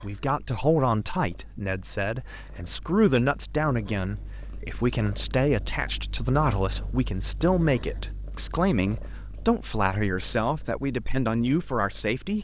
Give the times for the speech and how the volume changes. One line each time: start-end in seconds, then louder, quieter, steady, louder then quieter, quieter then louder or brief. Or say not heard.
0.0-12.3 steady.